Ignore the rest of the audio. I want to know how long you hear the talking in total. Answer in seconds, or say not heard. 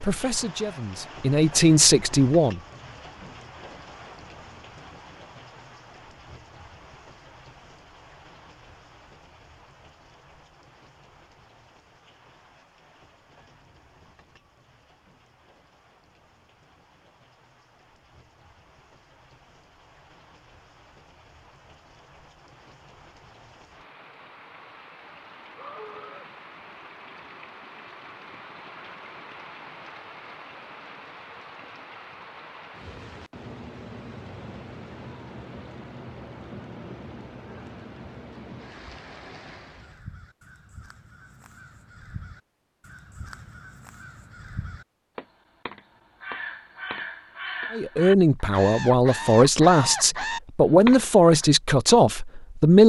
8 s.